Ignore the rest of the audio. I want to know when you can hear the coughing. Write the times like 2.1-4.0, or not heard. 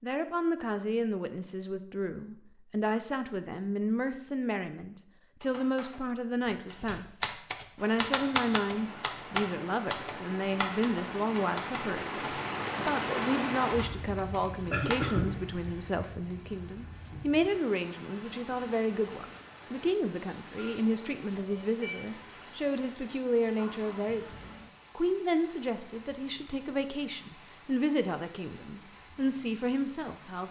14.7-16.1.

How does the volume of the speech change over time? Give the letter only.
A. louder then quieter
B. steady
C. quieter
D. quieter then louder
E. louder
B.